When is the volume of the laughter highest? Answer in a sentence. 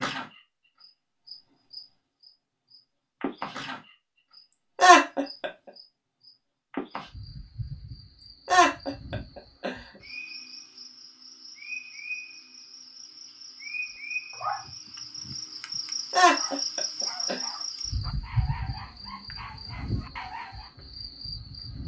The volume of the laughter peaks at 5 seconds.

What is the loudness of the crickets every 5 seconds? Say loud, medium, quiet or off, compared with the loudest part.
loud, medium, medium, loud, medium.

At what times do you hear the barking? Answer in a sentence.
You can hear the barking from 14.3 to 20.7 s.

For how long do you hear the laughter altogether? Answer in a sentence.
The laughter can be heard for 3 seconds in total.